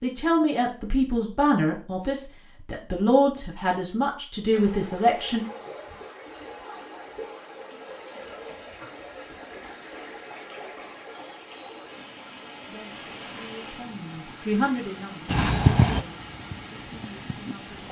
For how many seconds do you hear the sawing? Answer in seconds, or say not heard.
not heard.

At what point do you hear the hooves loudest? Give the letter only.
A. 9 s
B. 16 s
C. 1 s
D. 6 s
B.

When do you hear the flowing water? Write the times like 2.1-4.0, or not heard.
4.5-17.8.